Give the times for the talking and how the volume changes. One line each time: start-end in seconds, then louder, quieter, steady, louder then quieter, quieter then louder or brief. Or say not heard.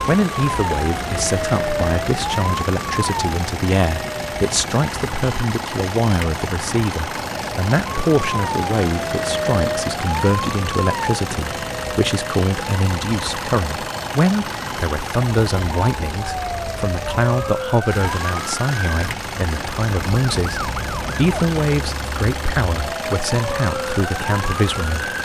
0.1-25.1 steady.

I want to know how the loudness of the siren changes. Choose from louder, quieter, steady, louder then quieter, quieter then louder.
steady.